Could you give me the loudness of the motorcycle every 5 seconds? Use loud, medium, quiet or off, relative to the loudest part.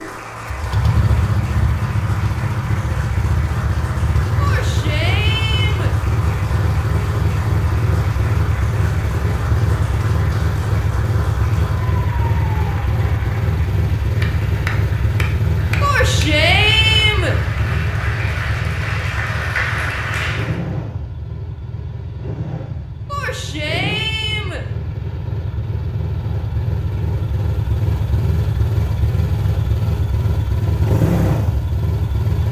loud, loud, loud, loud, medium, loud, loud.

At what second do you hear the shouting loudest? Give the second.
17 s.